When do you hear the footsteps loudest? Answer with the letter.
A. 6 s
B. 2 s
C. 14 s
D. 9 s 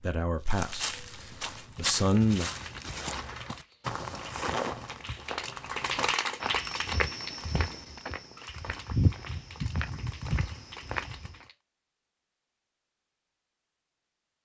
D.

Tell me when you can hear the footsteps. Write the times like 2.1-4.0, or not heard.
0.5-11.4.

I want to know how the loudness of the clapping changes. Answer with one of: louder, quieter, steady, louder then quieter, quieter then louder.
louder then quieter.